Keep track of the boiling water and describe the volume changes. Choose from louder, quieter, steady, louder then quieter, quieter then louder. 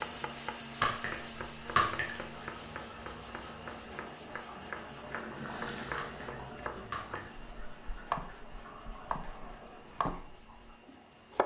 louder then quieter.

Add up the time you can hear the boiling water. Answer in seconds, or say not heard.
9 s.